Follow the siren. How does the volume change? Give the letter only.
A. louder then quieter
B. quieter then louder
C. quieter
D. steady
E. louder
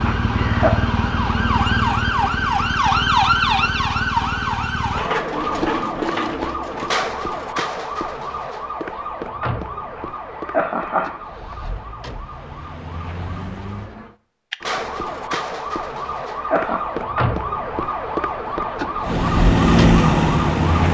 B.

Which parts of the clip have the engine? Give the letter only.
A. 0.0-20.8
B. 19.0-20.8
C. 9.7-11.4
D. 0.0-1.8
B.